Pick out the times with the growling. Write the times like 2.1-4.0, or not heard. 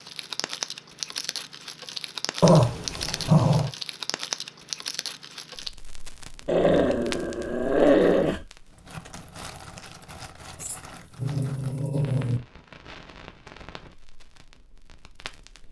2.4-3.7, 6.5-8.4, 10.6-12.4.